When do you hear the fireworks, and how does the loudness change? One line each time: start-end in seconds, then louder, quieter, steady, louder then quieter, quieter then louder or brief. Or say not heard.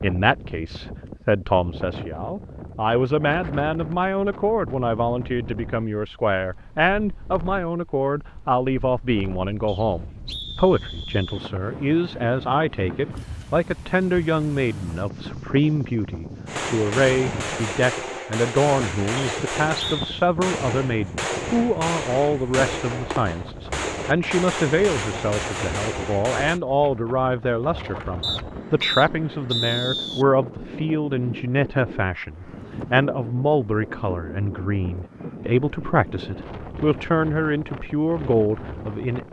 16.4-26.6 steady.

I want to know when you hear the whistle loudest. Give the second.
30 s.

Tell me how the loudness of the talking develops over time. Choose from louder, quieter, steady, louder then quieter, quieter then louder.
steady.